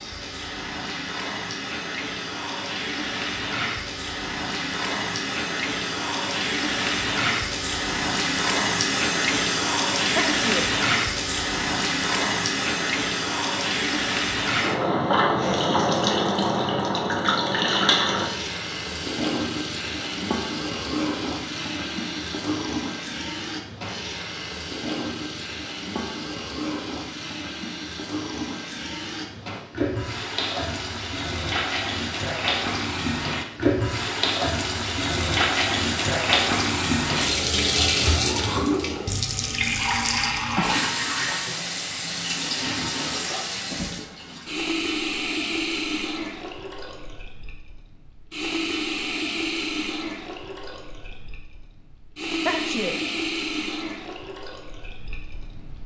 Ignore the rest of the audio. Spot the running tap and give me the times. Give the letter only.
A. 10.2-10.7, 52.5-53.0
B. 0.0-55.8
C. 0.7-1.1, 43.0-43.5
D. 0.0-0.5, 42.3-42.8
B.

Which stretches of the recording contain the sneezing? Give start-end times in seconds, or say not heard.
10.2-10.7, 52.5-53.0.